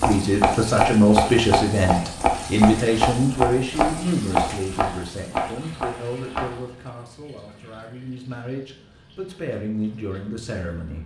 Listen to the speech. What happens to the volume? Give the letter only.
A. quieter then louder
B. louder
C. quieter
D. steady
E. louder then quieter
A.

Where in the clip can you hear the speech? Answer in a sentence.
The speech can be heard from 0.0 to 11.0 s.